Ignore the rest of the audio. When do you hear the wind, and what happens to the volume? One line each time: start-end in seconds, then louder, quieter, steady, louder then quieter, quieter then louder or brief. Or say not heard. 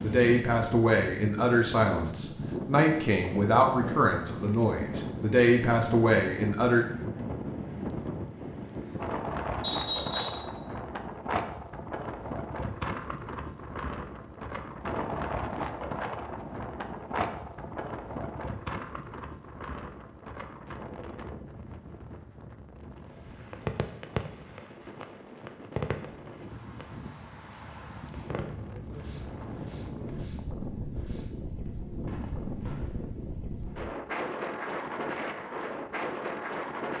0.0-36.9 quieter then louder.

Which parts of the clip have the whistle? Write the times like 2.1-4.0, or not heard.
9.6-10.4.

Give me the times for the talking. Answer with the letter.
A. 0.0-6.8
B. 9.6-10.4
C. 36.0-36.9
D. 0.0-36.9
A.